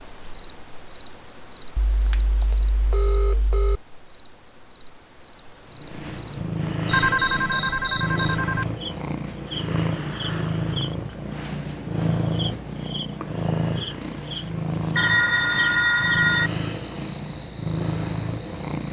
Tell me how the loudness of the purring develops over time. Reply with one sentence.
The volume of the purring stays about the same.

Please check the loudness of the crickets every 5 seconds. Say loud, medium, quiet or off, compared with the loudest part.
medium, loud, loud, loud.